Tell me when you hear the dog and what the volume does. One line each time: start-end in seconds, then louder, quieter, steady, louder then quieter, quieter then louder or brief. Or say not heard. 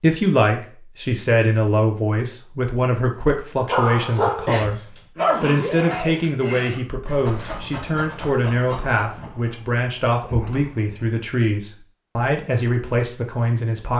3.6-11.1 quieter.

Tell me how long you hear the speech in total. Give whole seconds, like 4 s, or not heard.
14 s.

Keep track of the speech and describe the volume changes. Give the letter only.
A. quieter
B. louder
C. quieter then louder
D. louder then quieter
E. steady
E.